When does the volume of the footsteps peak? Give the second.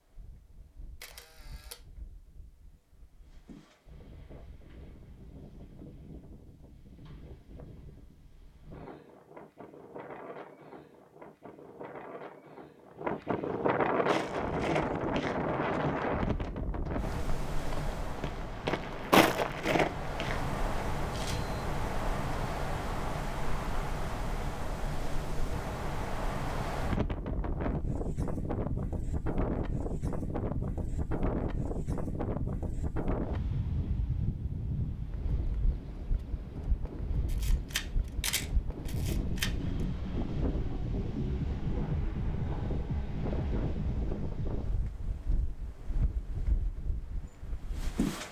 19 s.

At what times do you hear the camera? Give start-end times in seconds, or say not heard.
1.0-1.8, 21.1-21.6, 37.2-39.5.